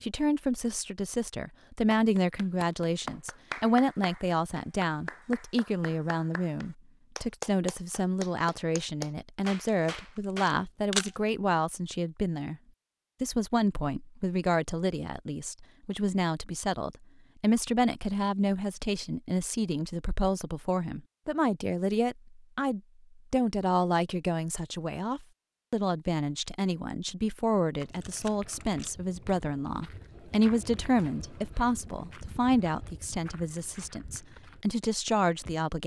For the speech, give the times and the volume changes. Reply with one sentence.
You can hear the speech from 0.0 to 12.6 s, at a steady volume; and from 13.2 to 35.8 s, at a steady volume.